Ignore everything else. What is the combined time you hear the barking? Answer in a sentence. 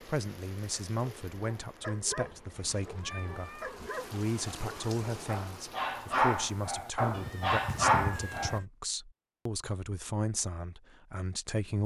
You can hear the barking for 8 seconds altogether.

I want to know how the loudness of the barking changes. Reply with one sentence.
The loudness of the barking goes up.